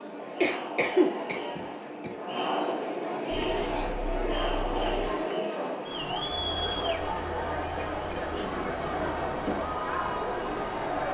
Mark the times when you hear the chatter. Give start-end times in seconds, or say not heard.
0.0-11.0.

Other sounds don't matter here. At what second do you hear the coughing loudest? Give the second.
1 s.